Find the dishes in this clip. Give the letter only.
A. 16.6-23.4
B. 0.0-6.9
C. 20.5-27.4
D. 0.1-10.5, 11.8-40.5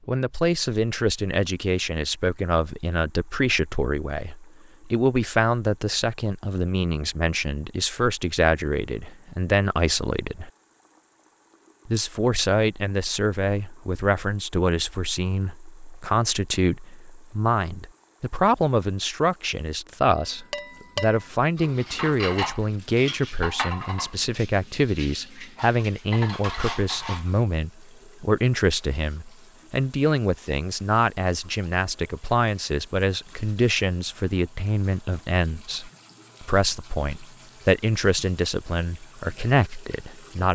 C.